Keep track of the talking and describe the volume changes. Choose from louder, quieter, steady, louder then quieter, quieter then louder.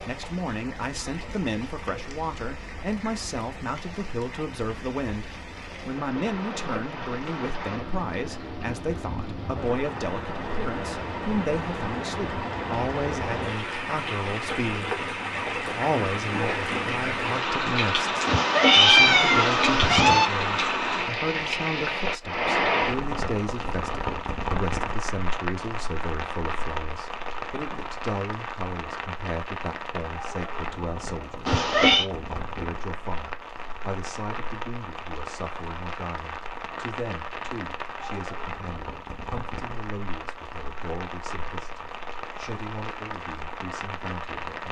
quieter.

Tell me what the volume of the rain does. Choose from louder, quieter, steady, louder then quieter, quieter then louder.
louder then quieter.